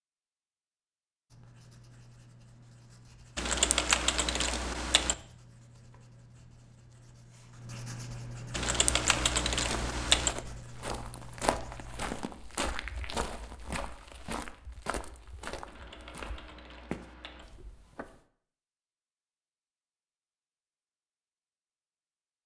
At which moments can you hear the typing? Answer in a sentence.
You can hear the typing from 3.4 to 5.2 s, from 8.5 to 10.3 s and from 15.7 to 17.4 s.